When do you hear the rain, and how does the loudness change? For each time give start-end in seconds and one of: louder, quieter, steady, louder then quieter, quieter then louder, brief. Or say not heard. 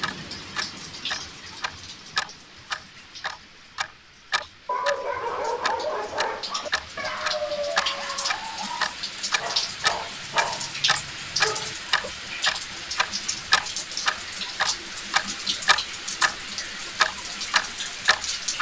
0.0-18.5 louder.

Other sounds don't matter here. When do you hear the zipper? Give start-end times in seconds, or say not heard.
not heard.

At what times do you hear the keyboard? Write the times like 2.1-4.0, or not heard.
not heard.